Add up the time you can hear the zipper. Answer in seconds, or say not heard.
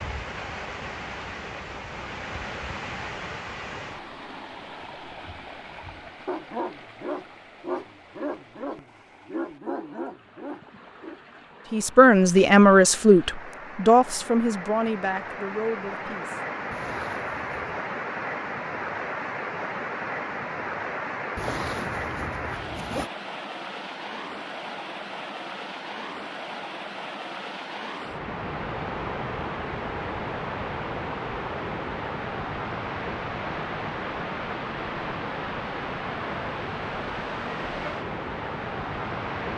3 s.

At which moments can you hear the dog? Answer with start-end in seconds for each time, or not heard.
5.2-11.2.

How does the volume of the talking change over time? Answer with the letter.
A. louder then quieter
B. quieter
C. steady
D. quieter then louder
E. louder
B.